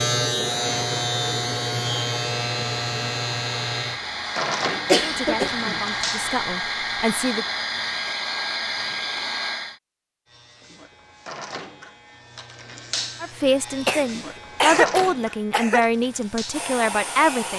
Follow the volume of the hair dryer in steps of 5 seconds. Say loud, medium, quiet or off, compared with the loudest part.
medium, loud, off, medium.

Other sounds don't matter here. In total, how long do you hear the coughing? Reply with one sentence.
You can hear the coughing for 3 seconds altogether.